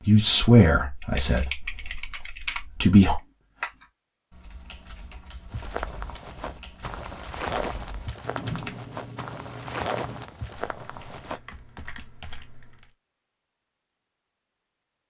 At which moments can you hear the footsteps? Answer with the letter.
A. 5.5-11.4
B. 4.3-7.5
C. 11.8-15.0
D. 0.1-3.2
A.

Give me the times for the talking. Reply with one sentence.
You can hear the talking from 0.1 to 3.2 s.